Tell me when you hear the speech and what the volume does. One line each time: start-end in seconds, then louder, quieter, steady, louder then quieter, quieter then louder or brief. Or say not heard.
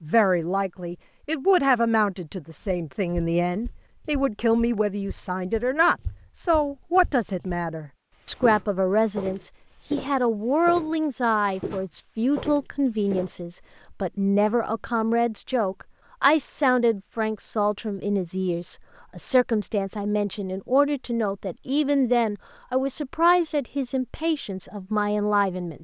0.0-25.7 steady.